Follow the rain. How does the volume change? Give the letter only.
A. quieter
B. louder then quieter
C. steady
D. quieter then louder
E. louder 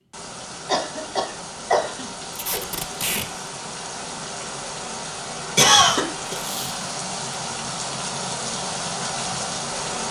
E.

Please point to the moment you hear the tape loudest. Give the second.
3 s.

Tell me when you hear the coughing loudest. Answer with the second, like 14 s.
6 s.